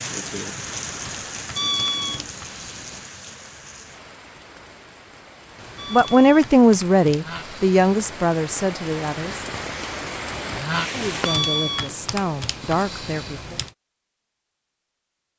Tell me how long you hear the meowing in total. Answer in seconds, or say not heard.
2 s.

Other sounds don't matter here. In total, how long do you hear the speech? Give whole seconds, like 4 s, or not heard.
6 s.